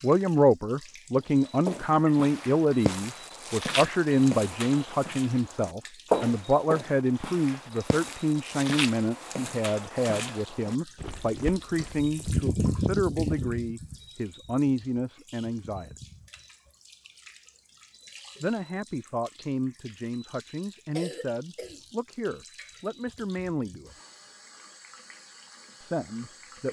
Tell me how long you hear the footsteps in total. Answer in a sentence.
The footsteps can be heard for 11 seconds in total.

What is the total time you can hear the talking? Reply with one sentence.
You can hear the talking for 22 seconds altogether.